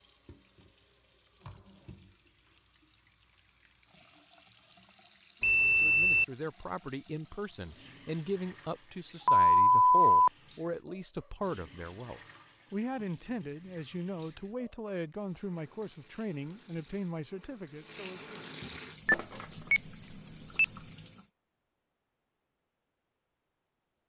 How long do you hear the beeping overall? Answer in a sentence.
The beeping can be heard for 3 seconds in total.